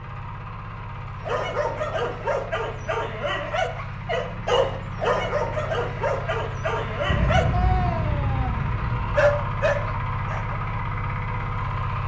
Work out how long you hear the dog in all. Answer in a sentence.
You can hear the dog for 9 seconds altogether.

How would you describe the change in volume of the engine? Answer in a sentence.
The loudness of the engine goes up.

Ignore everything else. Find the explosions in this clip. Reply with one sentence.
The explosions can be heard from 7.0 to 9.1 s.